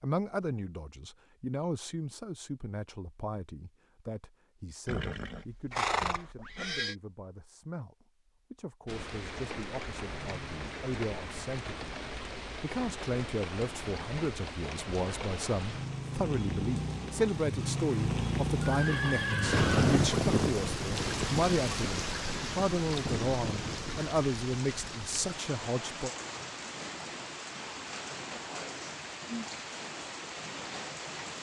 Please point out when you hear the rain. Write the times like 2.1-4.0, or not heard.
8.8-31.3.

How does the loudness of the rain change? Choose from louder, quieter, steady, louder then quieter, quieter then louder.
louder then quieter.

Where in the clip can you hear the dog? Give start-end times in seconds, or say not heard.
not heard.